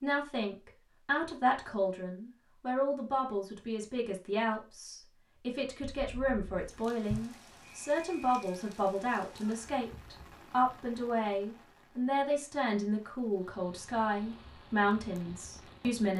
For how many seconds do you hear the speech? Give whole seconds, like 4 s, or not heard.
16 s.